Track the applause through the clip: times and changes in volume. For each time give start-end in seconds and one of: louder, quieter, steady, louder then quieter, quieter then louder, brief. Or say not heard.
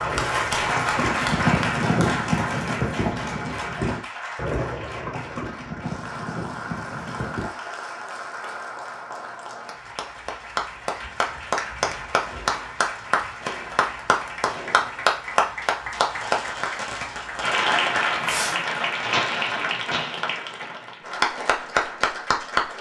0.0-22.7 quieter then louder.